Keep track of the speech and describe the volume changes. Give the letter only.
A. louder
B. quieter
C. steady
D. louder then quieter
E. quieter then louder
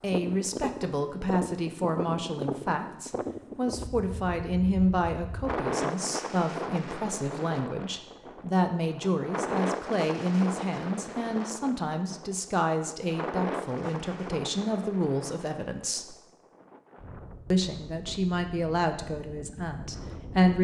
C.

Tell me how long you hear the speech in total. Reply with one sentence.
The speech can be heard for 19 seconds in total.